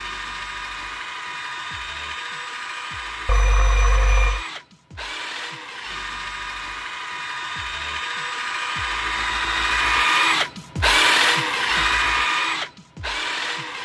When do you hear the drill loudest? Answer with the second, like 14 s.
11 s.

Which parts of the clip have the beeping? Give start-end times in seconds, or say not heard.
3.2-4.5.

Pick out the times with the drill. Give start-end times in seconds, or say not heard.
0.0-13.8.